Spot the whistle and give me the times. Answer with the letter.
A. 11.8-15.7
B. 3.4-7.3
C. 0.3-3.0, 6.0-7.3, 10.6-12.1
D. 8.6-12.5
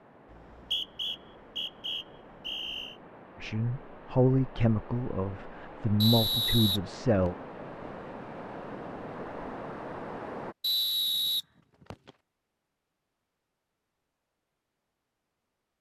C.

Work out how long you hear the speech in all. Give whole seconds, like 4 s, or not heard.
4 s.